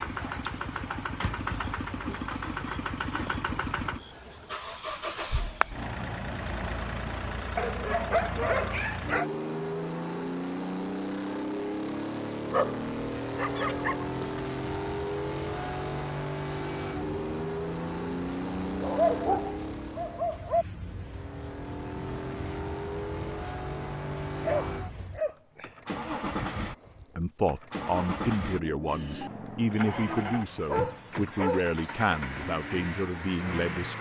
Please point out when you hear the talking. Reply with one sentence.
The talking can be heard from 27.1 to 33.9 s.